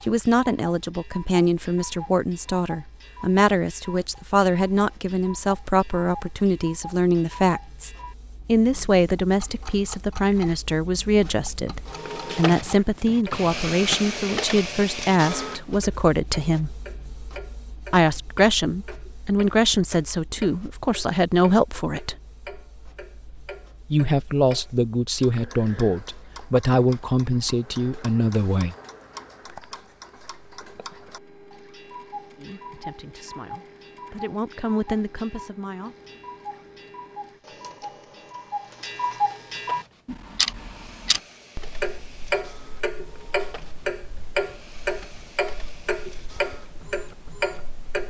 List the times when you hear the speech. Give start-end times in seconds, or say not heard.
0.1-16.7, 17.9-22.1, 23.9-28.8, 32.4-36.0.